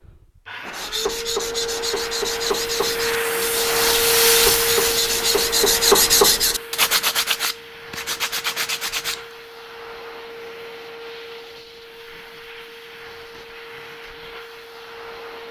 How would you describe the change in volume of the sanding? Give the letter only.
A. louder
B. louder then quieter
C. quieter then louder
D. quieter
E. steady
B.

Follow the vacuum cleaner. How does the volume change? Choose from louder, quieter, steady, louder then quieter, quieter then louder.
louder then quieter.